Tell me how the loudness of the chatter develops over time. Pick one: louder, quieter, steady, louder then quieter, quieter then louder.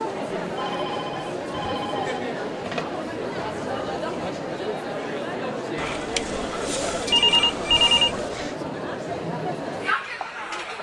steady.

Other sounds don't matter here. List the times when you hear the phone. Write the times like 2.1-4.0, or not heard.
0.6-3.0, 5.8-8.5.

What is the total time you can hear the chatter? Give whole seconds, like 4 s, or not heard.
11 s.